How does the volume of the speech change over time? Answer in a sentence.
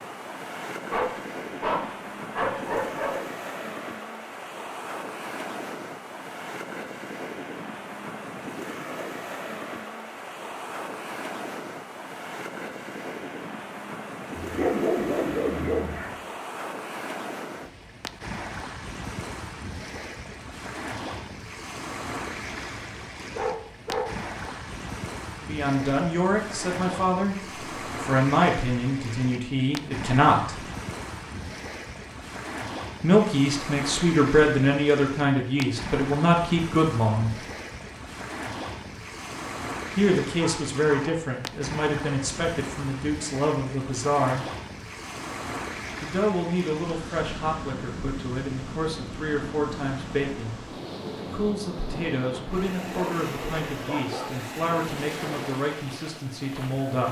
The volume of the speech goes down.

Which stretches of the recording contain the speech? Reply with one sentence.
The speech can be heard from 25.4 to 30.6 s, from 33.0 to 37.4 s, from 40.0 to 44.5 s and from 46.0 to 57.0 s.